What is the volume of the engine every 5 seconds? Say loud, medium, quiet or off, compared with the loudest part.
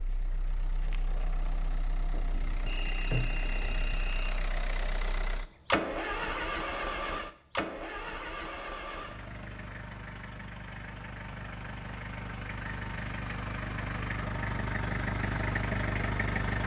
medium, loud, medium, loud.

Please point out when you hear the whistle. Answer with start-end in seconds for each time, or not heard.
2.6-4.3.